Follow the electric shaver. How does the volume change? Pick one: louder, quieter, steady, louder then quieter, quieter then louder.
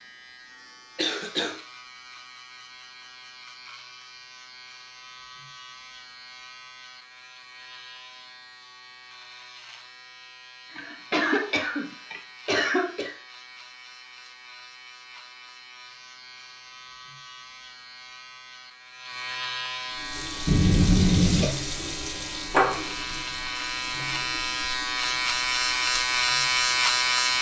louder.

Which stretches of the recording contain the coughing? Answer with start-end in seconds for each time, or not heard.
0.9-1.6, 10.7-13.2, 20.4-21.4.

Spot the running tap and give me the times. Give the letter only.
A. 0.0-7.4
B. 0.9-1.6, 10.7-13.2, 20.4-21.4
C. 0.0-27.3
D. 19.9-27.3
D.